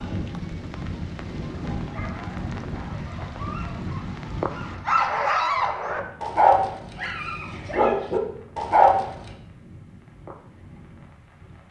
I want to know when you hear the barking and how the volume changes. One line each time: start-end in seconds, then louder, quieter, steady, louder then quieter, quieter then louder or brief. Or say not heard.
1.5-9.3 louder.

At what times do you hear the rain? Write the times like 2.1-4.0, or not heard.
0.0-11.6.